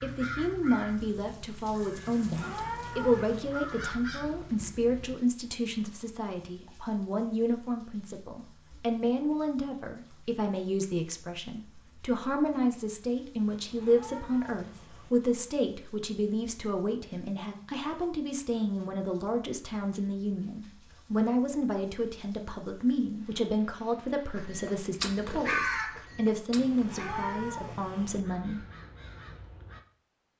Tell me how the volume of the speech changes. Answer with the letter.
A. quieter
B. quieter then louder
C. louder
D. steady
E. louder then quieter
D.